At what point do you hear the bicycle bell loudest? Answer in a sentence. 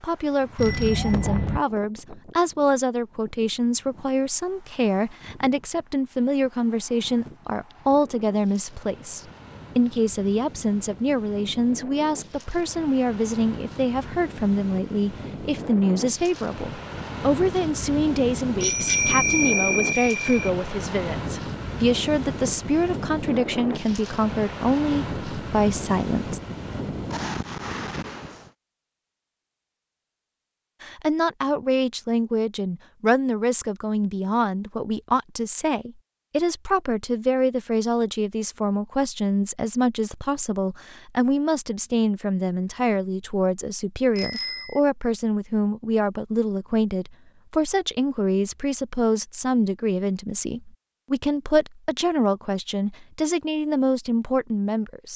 The volume of the bicycle bell peaks at 19 seconds.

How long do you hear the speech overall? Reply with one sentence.
The speech can be heard for 51 seconds in total.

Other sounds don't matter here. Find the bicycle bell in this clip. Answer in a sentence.
The bicycle bell can be heard from 0.6 to 1.6 s, from 18.6 to 20.5 s and from 44.1 to 44.8 s.